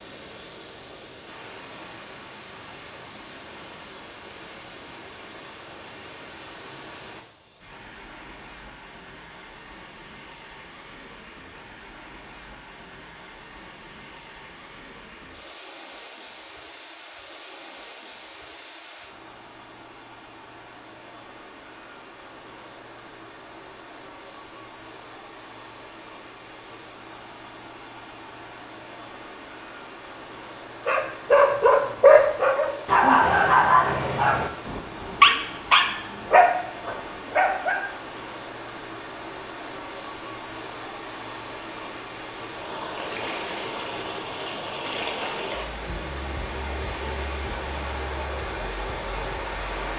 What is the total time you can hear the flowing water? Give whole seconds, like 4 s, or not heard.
50 s.